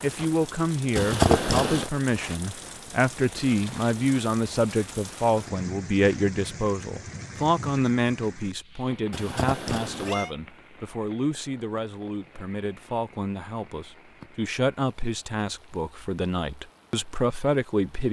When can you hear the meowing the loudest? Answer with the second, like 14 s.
1 s.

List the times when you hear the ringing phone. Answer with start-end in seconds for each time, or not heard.
not heard.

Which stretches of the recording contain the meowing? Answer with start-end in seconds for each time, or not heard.
0.9-1.9, 9.1-10.3.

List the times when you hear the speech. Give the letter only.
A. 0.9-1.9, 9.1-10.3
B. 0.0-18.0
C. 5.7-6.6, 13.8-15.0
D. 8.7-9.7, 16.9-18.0
B.